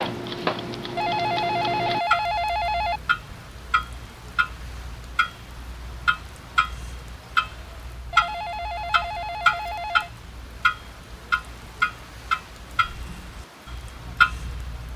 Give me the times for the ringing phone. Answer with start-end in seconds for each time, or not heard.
0.9-3.0, 8.1-10.1.